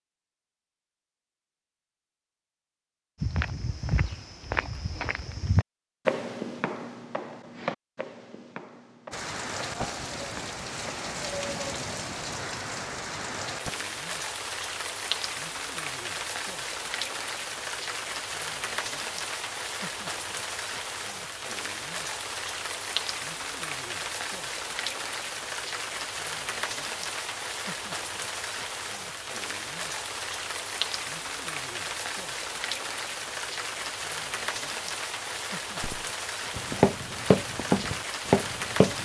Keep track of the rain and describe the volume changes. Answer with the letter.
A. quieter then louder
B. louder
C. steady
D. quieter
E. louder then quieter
C.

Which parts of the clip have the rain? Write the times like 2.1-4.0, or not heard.
9.1-39.0.